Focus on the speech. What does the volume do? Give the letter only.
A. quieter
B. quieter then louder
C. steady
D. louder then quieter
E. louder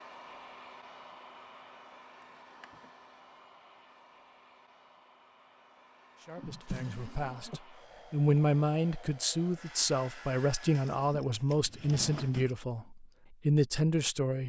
E.